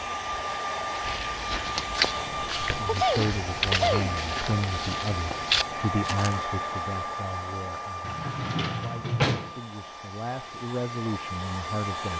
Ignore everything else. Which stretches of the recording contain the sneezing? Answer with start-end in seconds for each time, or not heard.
2.4-4.1.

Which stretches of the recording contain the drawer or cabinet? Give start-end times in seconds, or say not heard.
1.9-3.4, 8.0-9.6.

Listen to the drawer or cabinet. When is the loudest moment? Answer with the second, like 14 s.
9 s.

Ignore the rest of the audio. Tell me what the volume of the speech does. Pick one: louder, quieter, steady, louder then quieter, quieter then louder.
quieter then louder.